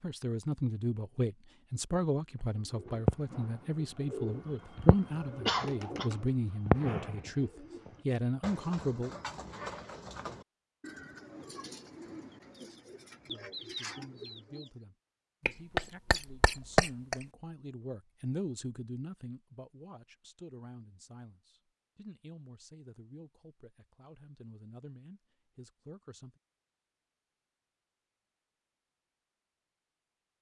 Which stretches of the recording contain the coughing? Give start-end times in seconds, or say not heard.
5.5-6.1, 15.4-17.1.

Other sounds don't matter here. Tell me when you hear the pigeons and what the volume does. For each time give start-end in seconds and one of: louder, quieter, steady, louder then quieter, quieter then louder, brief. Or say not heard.
2.6-14.7 quieter.